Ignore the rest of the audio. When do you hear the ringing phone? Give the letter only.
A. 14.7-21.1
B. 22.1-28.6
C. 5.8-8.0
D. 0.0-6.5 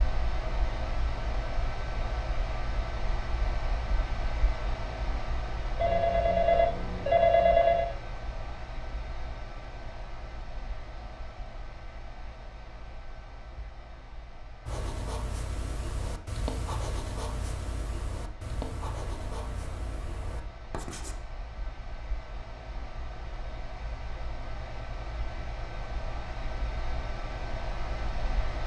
C.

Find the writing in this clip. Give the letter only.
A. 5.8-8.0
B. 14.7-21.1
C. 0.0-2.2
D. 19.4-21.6
B.